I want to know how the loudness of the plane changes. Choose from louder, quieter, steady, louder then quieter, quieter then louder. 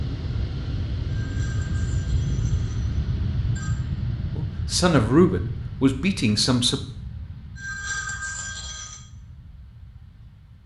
quieter.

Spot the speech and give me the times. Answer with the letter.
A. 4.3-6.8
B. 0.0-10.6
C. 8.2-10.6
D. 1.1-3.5
A.